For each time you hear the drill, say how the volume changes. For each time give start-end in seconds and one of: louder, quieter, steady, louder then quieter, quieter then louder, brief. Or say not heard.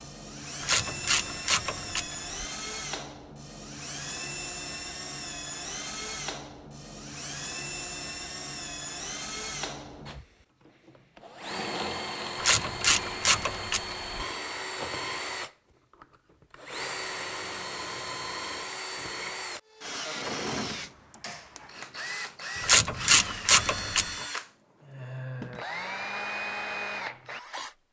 0.0-27.8 steady.